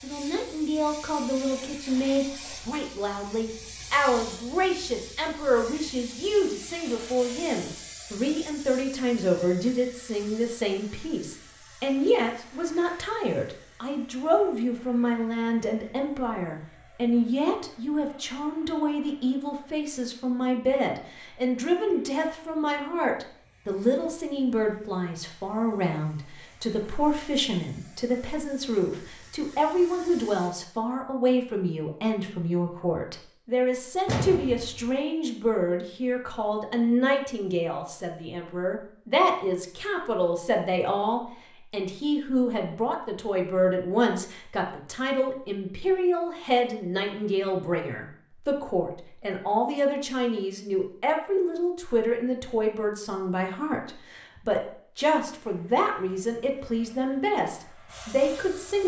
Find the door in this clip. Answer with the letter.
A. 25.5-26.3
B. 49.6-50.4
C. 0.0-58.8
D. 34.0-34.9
D.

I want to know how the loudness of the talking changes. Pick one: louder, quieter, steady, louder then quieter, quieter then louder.
steady.